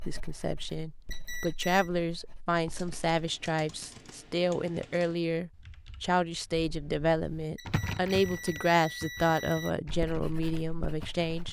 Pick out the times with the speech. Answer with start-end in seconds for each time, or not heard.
0.1-11.4.